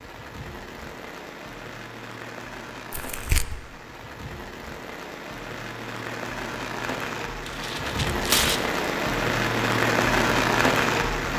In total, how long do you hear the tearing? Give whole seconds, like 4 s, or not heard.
2 s.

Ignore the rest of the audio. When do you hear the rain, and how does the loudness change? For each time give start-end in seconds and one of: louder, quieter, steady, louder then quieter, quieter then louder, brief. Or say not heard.
0.0-11.3 louder.